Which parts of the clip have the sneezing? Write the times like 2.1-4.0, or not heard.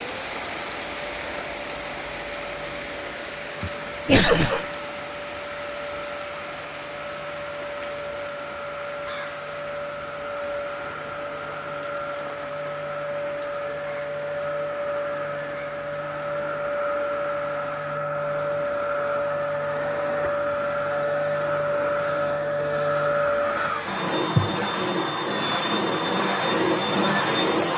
3.6-4.7.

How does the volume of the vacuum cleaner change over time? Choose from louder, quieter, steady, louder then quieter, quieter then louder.
louder.